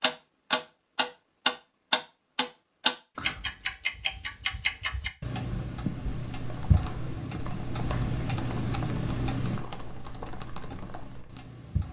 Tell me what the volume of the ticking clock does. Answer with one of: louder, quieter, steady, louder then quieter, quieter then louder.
quieter.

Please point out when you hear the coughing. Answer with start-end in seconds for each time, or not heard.
not heard.